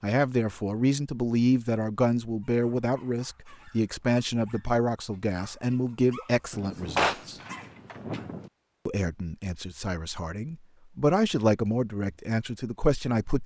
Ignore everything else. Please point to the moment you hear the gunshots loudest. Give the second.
7 s.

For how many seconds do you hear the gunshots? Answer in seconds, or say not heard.
2 s.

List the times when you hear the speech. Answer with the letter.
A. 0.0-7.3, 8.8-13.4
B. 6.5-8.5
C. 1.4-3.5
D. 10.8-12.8
A.